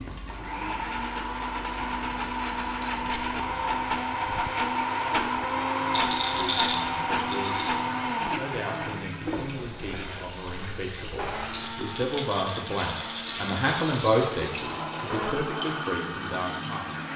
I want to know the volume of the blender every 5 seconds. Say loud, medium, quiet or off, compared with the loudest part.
loud, loud, medium, medium.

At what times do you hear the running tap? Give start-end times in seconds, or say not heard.
0.0-17.1.